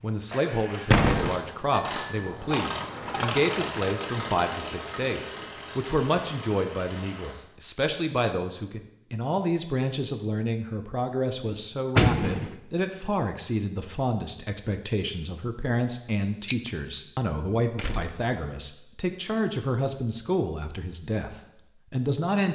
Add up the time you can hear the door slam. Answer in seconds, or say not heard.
2 s.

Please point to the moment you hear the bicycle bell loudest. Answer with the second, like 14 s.
17 s.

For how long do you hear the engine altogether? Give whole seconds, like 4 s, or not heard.
7 s.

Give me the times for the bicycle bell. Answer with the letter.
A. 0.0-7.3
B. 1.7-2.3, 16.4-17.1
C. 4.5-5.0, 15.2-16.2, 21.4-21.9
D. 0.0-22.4
B.